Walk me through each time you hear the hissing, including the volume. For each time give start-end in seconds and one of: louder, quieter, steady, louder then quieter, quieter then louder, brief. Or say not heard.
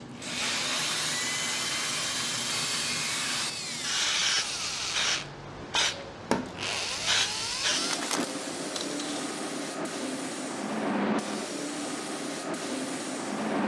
0.0-13.6 steady.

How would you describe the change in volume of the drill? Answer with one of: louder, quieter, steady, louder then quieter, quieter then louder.
steady.